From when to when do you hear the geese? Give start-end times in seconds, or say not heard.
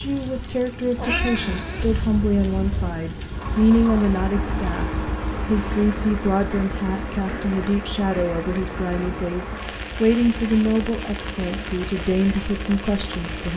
not heard.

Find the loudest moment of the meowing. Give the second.
1 s.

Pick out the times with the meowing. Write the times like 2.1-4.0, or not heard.
0.9-2.9.